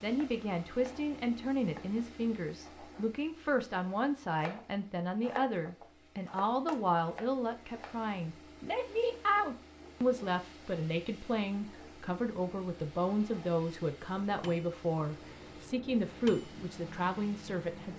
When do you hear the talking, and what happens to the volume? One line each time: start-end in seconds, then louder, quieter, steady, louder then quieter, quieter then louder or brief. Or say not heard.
0.0-17.9 steady.